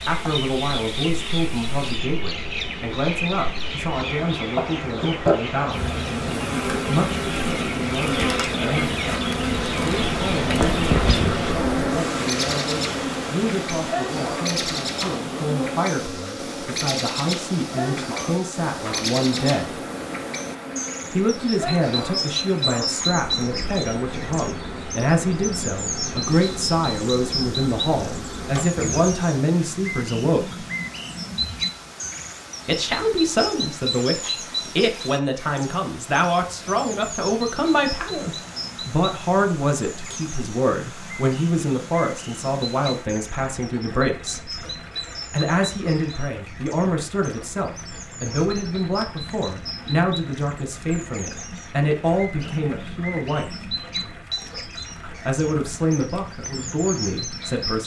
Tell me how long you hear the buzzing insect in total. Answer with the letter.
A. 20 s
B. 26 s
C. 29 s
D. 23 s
C.